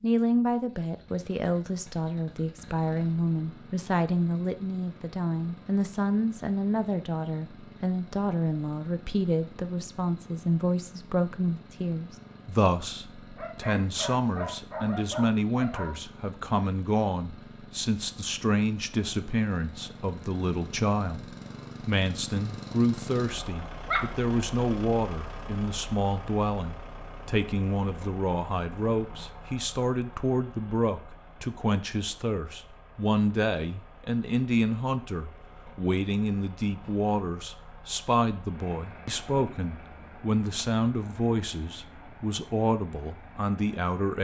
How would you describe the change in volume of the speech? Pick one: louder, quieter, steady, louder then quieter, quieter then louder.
steady.